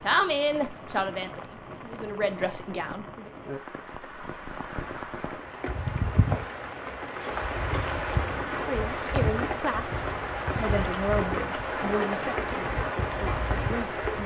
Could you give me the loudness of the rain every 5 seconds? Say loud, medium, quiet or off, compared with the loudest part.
medium, loud, loud.